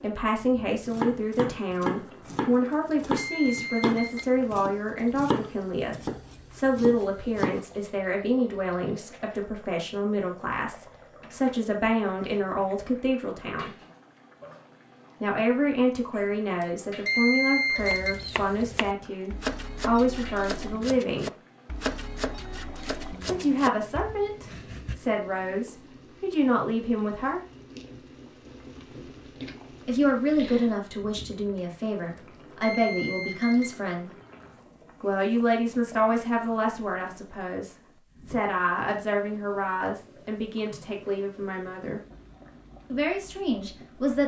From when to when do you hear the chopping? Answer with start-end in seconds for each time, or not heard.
0.7-7.7, 17.8-25.0.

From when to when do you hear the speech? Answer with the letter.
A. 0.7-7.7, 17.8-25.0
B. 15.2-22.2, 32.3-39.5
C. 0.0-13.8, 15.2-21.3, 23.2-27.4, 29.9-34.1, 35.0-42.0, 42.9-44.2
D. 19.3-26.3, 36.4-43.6
C.